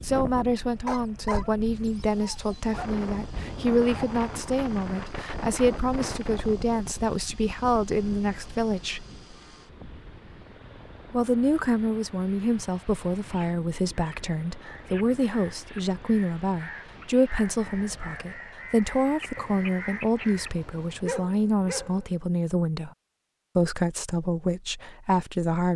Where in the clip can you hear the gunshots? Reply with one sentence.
The gunshots can't be heard in this clip.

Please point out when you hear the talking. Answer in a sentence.
The talking can be heard from 0.0 to 9.1 s, from 11.1 to 22.9 s and from 23.6 to 25.7 s.